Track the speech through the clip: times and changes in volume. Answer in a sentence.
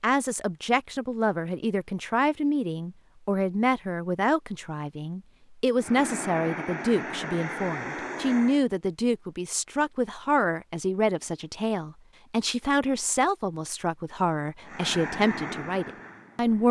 The speech can be heard from 0.0 to 16.6 s, at a steady volume.